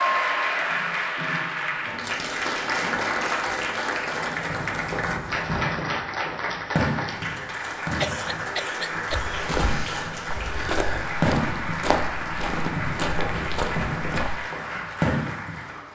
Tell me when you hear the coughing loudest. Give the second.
8 s.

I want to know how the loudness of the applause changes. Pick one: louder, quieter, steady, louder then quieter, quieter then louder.
quieter.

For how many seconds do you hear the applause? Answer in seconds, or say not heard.
16 s.